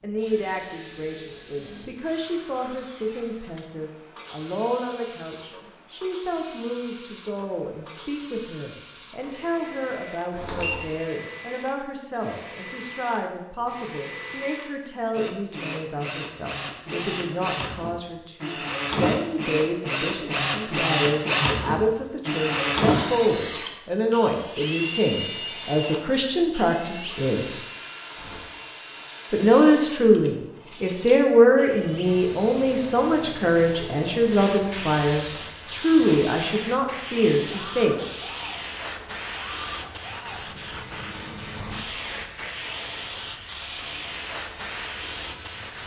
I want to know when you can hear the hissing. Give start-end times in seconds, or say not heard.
31.8-45.8.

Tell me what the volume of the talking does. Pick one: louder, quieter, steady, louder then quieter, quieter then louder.
louder.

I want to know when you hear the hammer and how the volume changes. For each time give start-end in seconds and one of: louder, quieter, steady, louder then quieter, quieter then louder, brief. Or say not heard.
not heard.